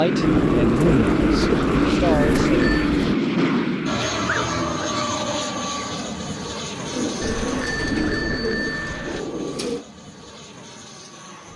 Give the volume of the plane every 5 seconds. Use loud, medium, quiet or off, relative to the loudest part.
loud, medium, quiet.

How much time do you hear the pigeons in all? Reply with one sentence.
The pigeons can be heard for 6 seconds in total.